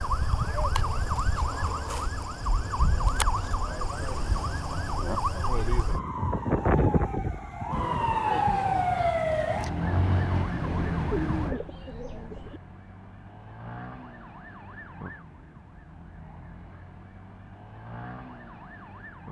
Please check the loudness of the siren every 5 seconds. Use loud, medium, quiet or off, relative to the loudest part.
medium, loud, medium, quiet.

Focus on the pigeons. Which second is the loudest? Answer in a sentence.
The loudest moment of the pigeons is at 11 seconds.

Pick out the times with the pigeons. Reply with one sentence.
The pigeons can be heard from 10.6 to 12.6 s.